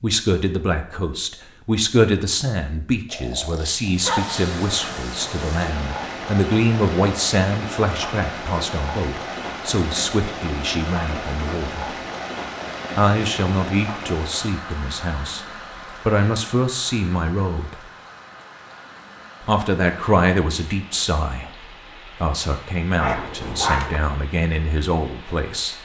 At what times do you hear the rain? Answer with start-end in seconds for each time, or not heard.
3.9-25.8.